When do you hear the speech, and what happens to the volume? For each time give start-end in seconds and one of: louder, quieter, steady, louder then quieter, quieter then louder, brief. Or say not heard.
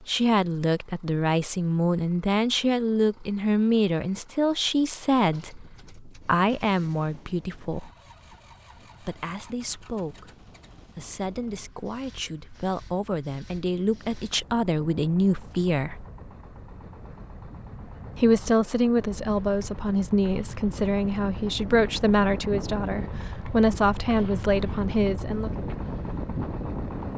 0.1-7.9 steady
9.0-16.1 louder
18.1-25.5 steady.